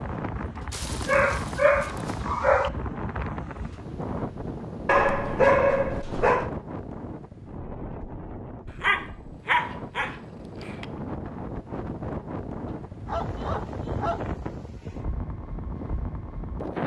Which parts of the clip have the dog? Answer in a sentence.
You can hear the dog from 0.7 to 2.7 s, from 4.8 to 6.5 s, from 8.8 to 10.8 s and from 12.7 to 14.3 s.